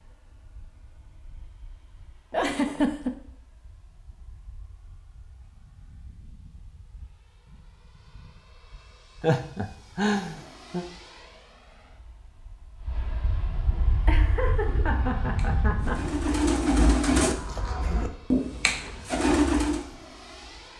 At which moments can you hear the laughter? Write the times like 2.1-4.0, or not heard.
2.3-3.1, 9.2-10.8, 14.1-16.1.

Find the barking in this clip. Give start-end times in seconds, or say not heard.
not heard.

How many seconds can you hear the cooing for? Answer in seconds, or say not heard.
6 s.